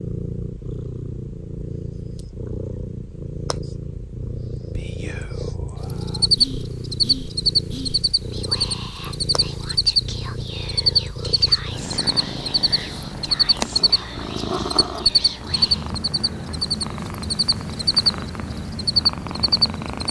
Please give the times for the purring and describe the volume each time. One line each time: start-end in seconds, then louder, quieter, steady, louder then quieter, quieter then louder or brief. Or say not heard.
0.0-20.0 steady.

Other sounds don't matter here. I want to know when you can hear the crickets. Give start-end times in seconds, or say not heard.
5.9-20.0.